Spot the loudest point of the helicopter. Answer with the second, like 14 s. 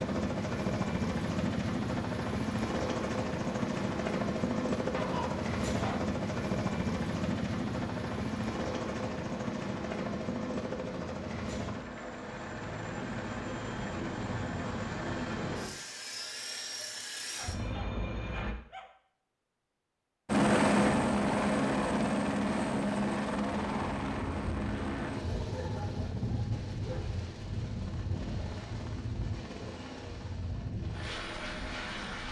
21 s.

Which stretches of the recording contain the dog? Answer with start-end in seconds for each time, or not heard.
4.9-6.1, 17.4-18.9, 25.2-27.0.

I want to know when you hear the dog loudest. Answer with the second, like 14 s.
5 s.